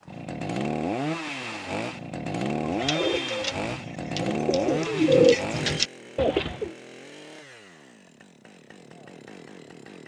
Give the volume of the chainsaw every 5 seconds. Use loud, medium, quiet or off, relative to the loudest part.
loud, medium.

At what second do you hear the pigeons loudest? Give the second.
5 s.